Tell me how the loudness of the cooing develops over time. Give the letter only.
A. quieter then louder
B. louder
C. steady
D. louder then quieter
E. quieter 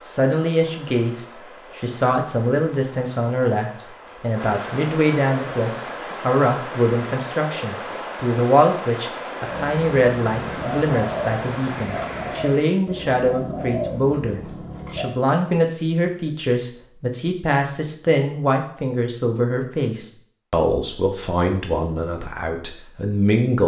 C.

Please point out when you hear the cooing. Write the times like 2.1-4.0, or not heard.
9.4-15.1.